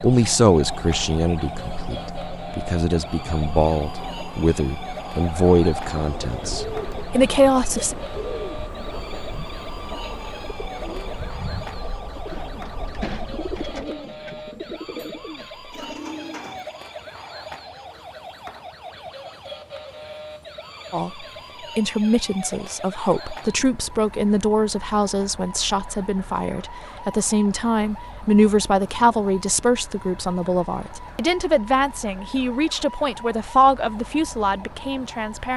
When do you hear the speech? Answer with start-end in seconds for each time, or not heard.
0.0-8.0, 20.9-35.5.